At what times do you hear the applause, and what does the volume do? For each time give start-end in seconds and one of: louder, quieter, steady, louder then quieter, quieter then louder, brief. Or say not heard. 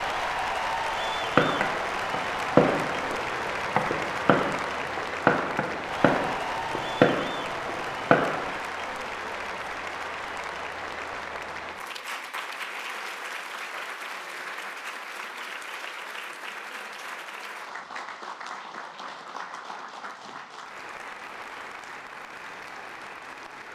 0.0-23.7 quieter.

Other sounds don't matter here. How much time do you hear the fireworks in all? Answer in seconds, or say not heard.
7 s.